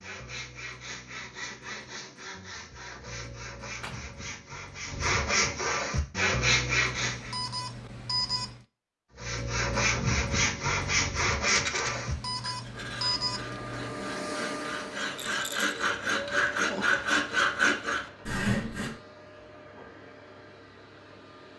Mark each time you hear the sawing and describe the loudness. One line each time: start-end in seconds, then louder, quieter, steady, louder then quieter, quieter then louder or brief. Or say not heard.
0.0-7.3 louder
9.2-18.9 quieter then louder.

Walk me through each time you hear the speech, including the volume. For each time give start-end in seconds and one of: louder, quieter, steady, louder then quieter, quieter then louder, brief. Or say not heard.
not heard.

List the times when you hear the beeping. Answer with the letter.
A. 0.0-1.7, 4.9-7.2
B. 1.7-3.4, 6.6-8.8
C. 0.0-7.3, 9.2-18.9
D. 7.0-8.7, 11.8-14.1
D.